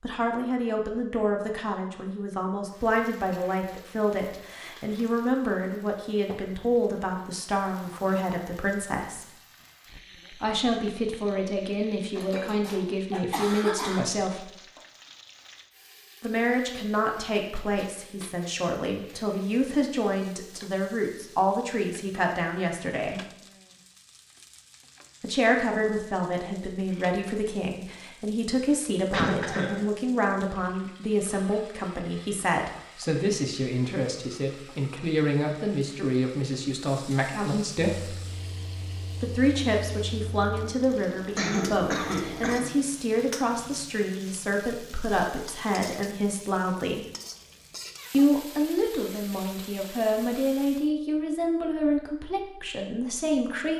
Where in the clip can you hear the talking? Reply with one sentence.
You can hear the talking from 0.0 to 9.3 s, from 10.3 to 14.5 s, from 16.2 to 23.2 s, from 25.2 to 38.2 s, from 39.2 to 47.0 s and from 48.1 to 53.7 s.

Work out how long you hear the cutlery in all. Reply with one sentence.
The cutlery can't be heard in this clip.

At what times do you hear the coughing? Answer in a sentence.
You can hear the coughing from 12.2 to 14.0 s, from 29.1 to 29.9 s and from 41.4 to 42.8 s.